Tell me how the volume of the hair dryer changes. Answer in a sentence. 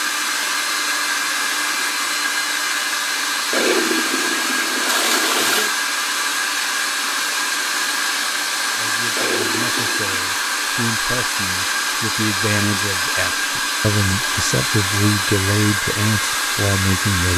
The volume of the hair dryer stays about the same.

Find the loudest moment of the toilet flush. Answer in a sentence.
The loudest moment of the toilet flush is at 5 seconds.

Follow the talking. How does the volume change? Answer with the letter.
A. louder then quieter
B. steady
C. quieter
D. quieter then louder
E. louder
E.